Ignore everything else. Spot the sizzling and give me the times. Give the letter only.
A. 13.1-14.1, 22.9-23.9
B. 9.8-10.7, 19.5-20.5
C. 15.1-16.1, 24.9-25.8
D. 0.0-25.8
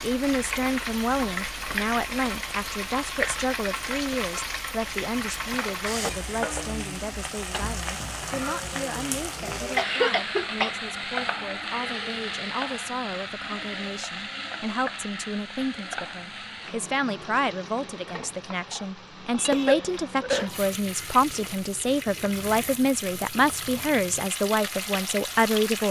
D.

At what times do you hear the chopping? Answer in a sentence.
The chopping can't be heard in this clip.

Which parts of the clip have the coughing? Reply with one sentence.
You can hear the coughing from 9.8 to 10.7 s and from 19.5 to 20.5 s.